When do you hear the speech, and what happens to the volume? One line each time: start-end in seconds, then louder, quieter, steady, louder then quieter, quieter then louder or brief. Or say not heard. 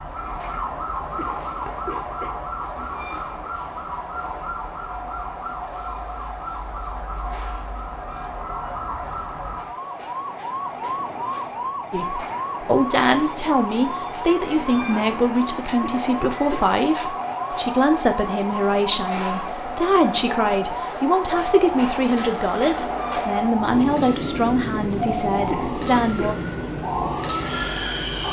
11.9-26.4 steady.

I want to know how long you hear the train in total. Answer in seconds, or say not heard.
28 s.